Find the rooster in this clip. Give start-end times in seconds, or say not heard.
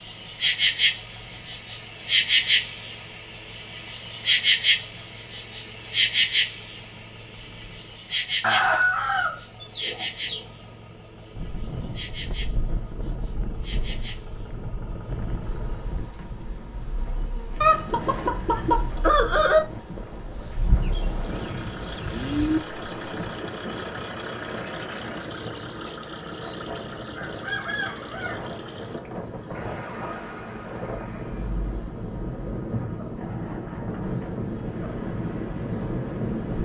8.4-10.4, 17.6-19.6, 27.1-28.4.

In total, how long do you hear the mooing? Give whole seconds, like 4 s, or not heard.
2 s.